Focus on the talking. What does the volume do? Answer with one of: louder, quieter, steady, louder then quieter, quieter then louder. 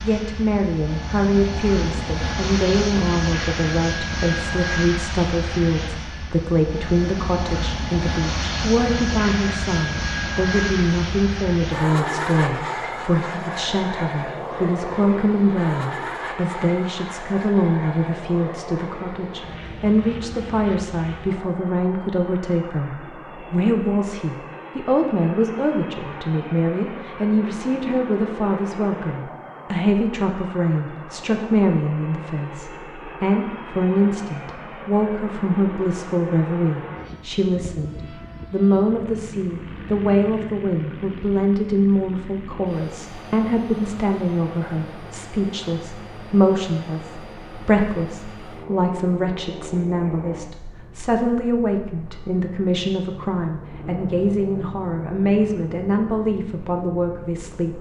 steady.